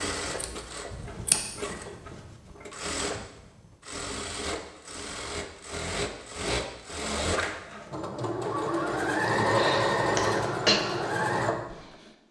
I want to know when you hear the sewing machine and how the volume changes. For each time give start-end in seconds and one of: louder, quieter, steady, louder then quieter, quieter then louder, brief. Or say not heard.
0.0-12.1 louder.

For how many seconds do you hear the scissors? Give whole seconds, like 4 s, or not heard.
2 s.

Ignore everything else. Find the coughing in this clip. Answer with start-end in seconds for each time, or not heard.
9.4-10.8.